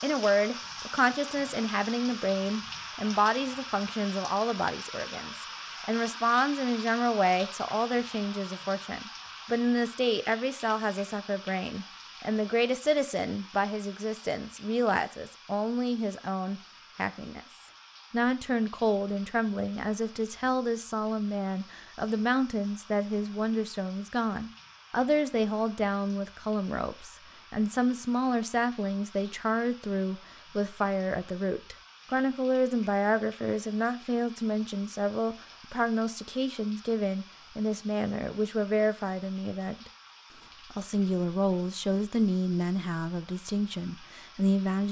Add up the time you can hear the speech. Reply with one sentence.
You can hear the speech for 43 seconds altogether.